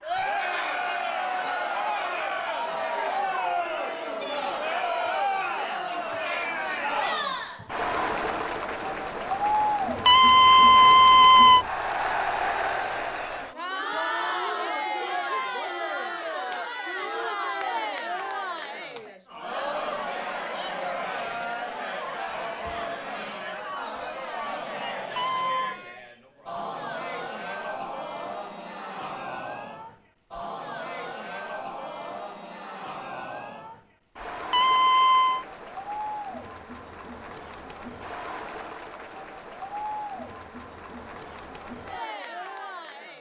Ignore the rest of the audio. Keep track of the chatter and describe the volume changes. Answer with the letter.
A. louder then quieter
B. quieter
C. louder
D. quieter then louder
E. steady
B.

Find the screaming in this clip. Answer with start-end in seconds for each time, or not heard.
10.1-11.7, 25.1-25.8, 34.5-35.5.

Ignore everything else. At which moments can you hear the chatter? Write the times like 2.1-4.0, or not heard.
0.0-43.1.